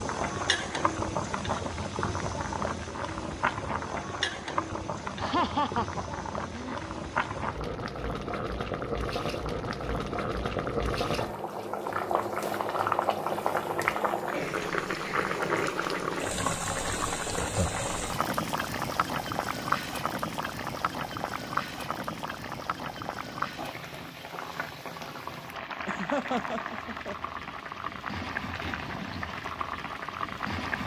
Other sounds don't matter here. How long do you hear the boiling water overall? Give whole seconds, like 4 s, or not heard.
31 s.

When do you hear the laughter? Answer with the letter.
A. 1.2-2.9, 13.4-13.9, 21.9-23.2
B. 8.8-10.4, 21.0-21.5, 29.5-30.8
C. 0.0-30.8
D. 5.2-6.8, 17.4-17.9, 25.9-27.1
D.